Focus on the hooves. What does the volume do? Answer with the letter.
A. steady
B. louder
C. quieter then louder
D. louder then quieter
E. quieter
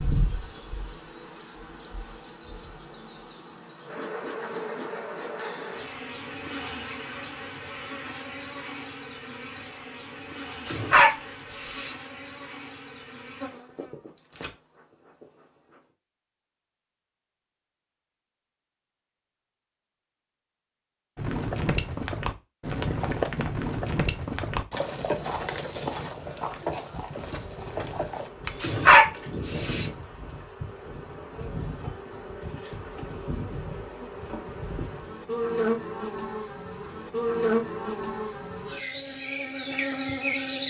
E.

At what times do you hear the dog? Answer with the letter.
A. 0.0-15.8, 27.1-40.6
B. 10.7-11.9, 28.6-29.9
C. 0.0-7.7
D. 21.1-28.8
B.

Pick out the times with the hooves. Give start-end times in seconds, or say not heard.
21.1-28.8.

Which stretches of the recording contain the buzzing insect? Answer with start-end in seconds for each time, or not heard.
0.0-15.8, 27.1-40.6.